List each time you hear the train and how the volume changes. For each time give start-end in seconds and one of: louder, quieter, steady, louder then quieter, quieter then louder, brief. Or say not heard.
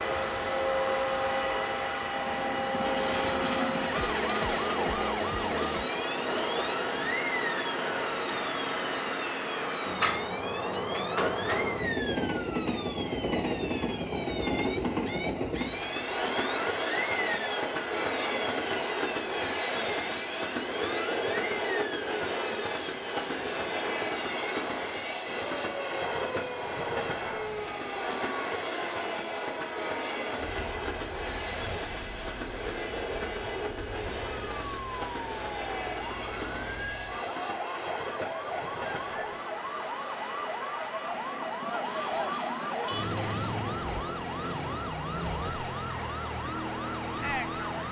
0.0-47.8 quieter.